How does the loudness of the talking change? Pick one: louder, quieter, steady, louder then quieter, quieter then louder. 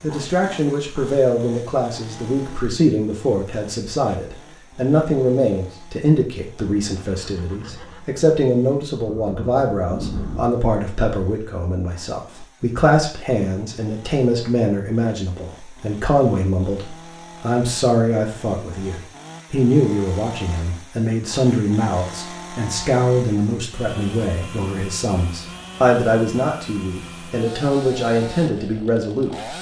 steady.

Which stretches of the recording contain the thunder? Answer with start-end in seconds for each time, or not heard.
9.1-10.4.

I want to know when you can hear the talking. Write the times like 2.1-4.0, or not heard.
0.0-29.5.